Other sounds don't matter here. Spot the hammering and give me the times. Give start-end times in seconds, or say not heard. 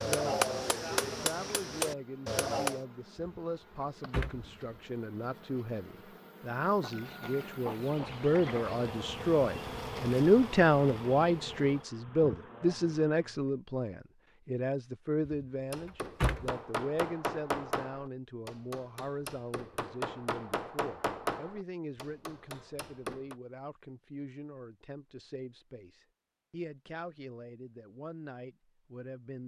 0.0-2.9, 15.7-23.4.